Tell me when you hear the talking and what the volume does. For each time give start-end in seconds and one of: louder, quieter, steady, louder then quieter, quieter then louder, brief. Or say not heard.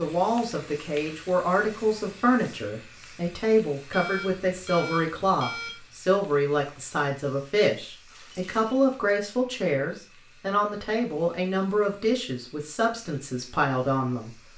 0.0-14.3 steady.